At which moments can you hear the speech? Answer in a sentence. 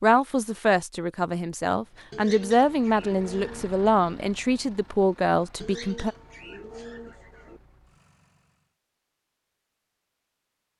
You can hear the speech from 0.0 to 6.2 s.